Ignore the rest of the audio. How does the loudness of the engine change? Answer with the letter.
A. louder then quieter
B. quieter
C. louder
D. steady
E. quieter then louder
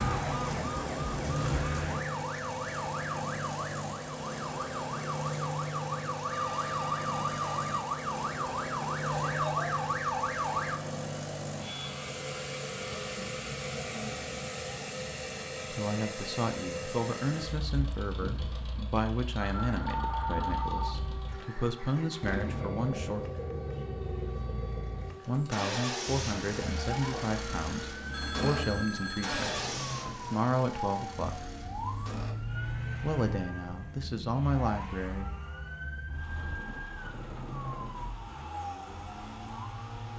B.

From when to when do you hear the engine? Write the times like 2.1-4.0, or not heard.
0.0-40.1.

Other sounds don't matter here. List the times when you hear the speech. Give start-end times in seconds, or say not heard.
15.7-23.2, 25.2-31.4, 33.0-35.3.